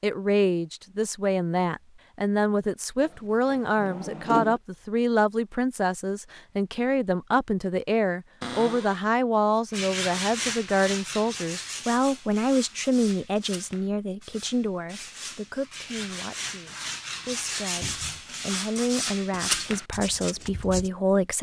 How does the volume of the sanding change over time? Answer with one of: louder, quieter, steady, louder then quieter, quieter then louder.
quieter then louder.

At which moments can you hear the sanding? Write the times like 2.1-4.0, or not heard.
9.7-20.9.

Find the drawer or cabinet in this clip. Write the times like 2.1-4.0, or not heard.
3.0-4.6, 8.4-9.1, 17.8-18.2.